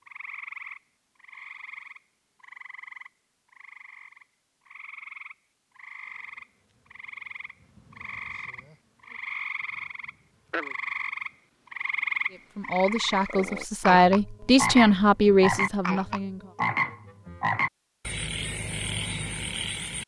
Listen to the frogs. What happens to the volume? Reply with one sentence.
The volume of the frogs goes up.